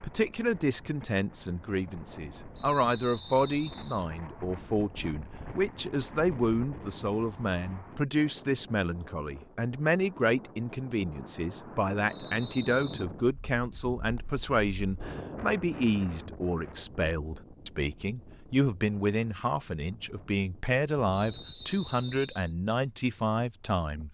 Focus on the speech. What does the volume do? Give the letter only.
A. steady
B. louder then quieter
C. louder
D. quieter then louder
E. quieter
A.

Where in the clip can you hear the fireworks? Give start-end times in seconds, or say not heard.
not heard.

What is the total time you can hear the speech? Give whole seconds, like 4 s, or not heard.
24 s.